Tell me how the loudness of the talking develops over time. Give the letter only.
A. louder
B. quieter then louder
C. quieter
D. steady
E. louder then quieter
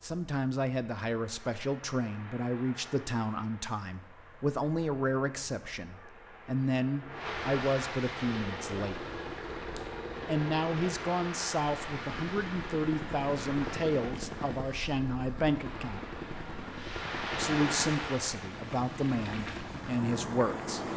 D.